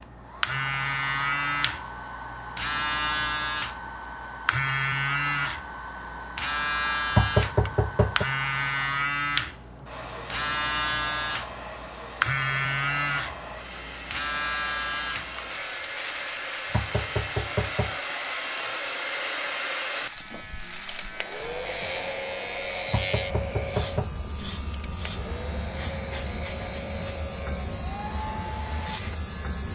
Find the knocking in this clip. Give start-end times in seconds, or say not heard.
7.1-8.2, 16.7-17.9, 22.9-24.1.